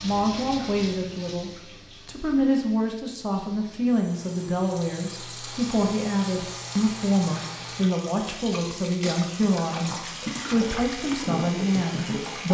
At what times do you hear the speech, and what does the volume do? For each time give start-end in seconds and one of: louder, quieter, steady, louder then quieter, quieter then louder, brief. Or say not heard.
0.0-12.5 steady.